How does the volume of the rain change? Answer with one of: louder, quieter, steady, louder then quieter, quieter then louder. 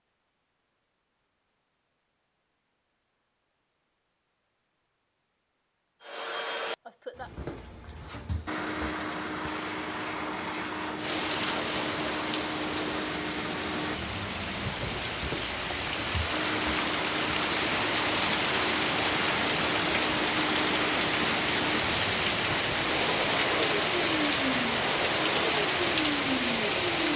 louder.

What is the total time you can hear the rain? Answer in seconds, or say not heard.
16 s.